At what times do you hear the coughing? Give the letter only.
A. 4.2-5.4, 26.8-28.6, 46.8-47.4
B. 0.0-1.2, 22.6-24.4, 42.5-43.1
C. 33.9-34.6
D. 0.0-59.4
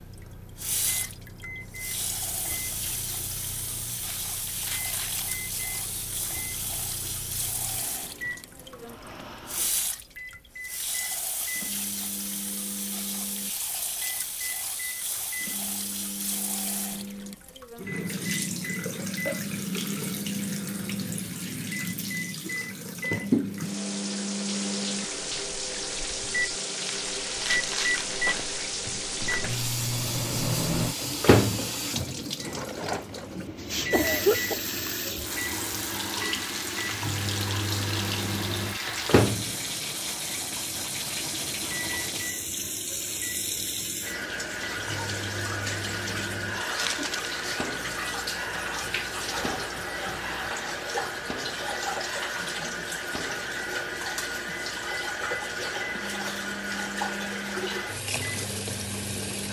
C.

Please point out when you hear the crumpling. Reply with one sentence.
You can hear the crumpling from 4.2 to 5.4 s, from 26.8 to 28.6 s and from 46.8 to 47.4 s.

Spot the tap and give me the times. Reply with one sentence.
You can hear the tap from 0.0 to 59.4 s.